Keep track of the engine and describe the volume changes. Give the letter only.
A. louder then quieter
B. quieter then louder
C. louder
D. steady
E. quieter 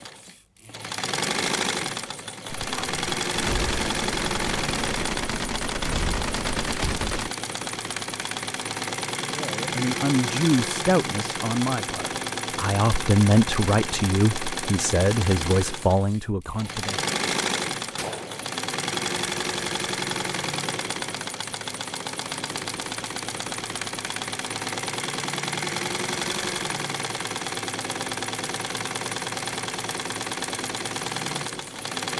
D.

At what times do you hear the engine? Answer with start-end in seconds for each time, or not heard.
0.0-32.1.